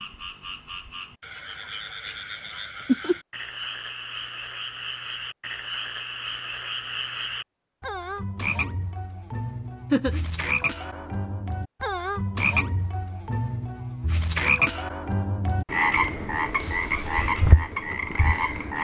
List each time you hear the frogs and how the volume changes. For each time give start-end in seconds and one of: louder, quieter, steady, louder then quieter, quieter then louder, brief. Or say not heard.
0.0-18.7 louder.